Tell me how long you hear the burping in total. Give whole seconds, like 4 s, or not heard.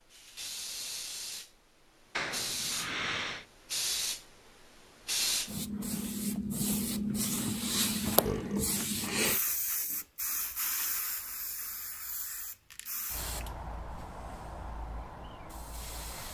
2 s.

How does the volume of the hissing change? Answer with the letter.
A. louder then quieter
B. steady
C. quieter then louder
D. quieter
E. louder
A.